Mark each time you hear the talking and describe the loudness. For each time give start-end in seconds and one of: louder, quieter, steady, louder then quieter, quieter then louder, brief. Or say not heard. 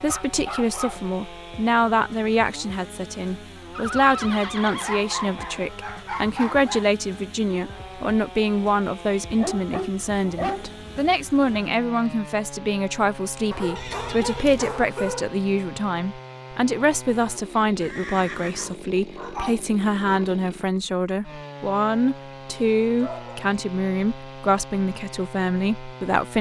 0.0-26.3 steady.